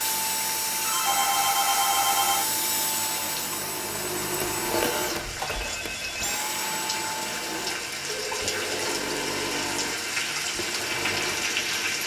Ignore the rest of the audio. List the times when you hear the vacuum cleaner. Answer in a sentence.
You can hear the vacuum cleaner from 0.0 to 12.0 s.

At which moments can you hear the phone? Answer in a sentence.
You can hear the phone from 0.8 to 2.5 s, from 4.4 to 6.4 s and from 8.1 to 9.6 s.